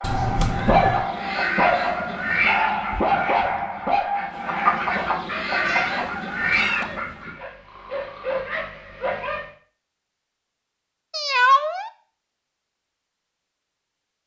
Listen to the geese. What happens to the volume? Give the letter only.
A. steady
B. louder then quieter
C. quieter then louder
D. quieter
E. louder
C.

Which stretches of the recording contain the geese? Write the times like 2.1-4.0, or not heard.
0.8-7.3.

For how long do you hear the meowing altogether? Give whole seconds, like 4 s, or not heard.
3 s.